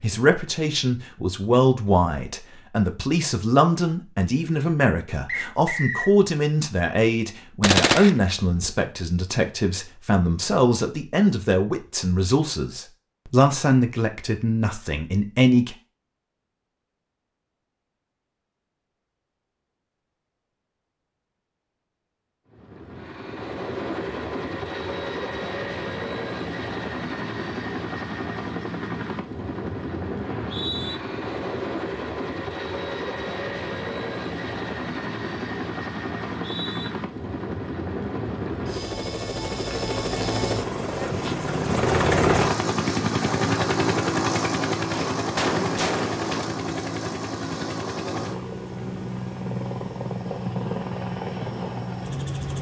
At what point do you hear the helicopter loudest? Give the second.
42 s.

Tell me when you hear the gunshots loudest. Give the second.
8 s.